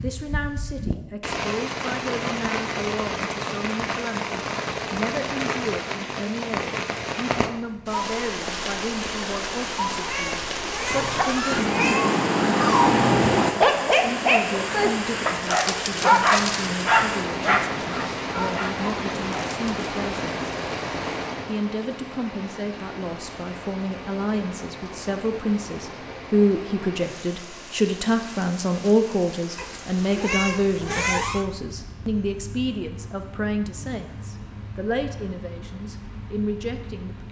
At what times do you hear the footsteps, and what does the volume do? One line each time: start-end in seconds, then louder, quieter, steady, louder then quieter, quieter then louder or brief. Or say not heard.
not heard.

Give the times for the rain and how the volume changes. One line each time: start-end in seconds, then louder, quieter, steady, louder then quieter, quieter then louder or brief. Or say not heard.
0.0-37.2 quieter.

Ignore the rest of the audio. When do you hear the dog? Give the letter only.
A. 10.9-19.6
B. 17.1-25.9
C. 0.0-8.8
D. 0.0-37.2
A.